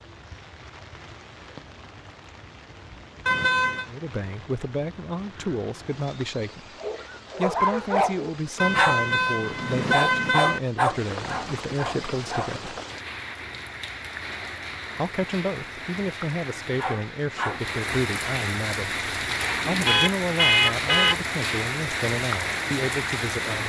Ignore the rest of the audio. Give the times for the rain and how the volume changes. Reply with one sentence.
You can hear the rain from 0.0 to 23.6 s, getting louder.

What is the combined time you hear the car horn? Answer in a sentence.
The car horn can be heard for 4 seconds in total.